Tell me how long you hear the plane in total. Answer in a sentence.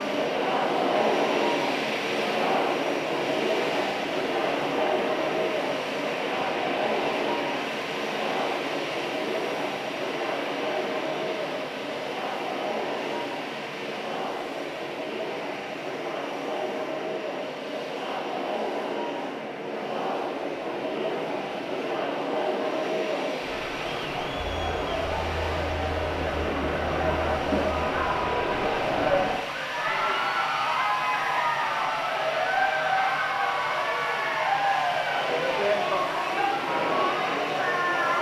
You can hear the plane for 38 seconds altogether.